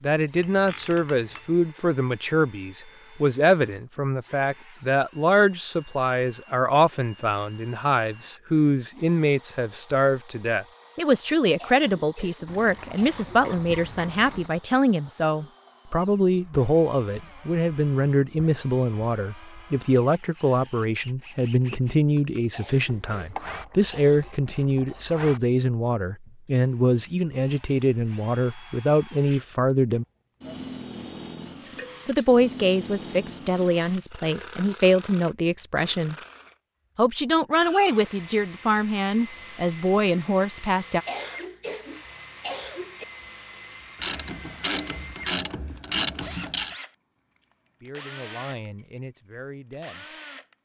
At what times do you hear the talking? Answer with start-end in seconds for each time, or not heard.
0.0-30.1, 32.0-36.1, 37.0-41.0, 47.8-50.1.